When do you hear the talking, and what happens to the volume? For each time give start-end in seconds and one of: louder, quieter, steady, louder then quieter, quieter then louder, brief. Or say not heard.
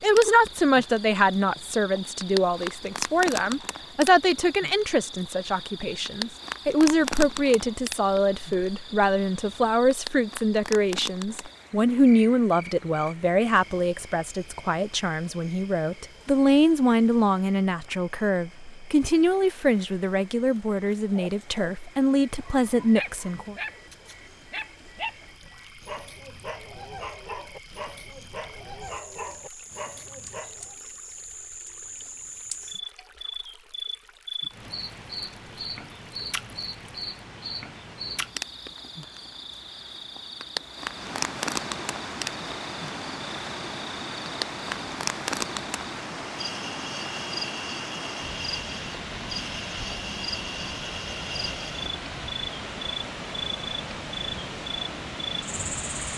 0.0-23.6 steady.